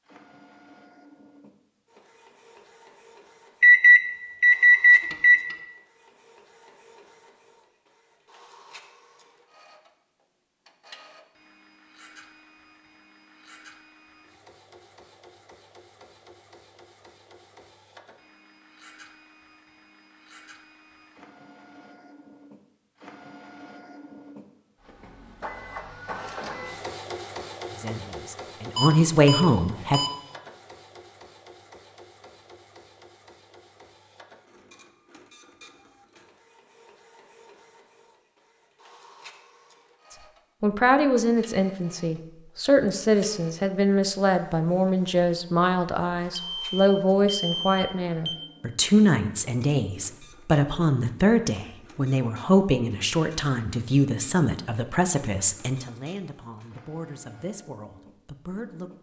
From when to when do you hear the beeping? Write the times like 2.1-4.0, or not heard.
3.6-5.4, 28.8-30.1, 46.4-48.4.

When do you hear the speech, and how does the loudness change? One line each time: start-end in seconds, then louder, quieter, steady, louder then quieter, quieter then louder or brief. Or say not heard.
27.7-30.0 brief
40.6-58.9 quieter.